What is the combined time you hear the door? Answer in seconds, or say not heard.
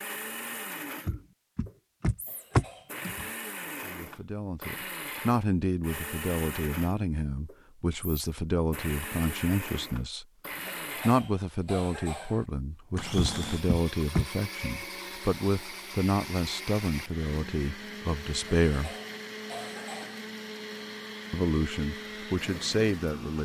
3 s.